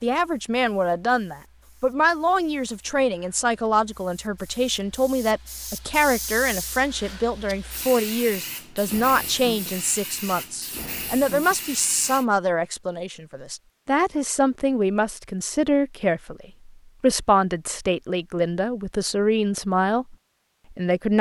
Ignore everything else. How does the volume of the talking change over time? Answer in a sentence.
The loudness of the talking stays about the same.